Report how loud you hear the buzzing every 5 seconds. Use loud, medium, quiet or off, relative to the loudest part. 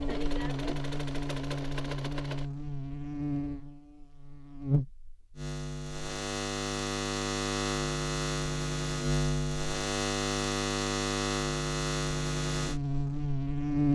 medium, loud, loud.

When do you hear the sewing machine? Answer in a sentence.
The sewing machine can be heard from 0.0 to 2.5 s.